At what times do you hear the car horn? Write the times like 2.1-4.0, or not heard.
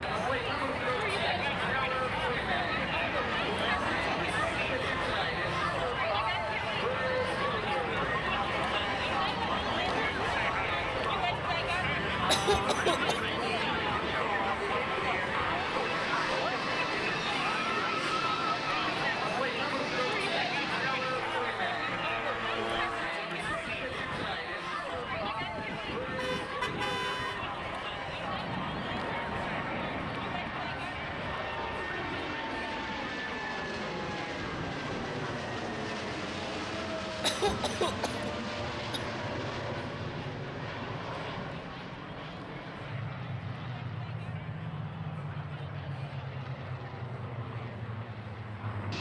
26.1-27.5.